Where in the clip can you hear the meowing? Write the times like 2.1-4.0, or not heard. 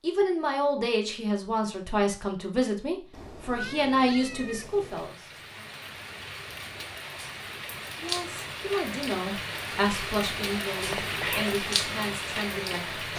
3.1-5.1, 10.8-11.6.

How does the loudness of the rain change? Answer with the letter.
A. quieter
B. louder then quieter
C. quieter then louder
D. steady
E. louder
E.